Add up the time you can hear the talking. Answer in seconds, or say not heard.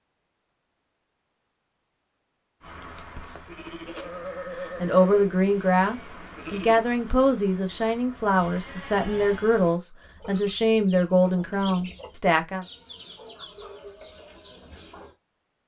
8 s.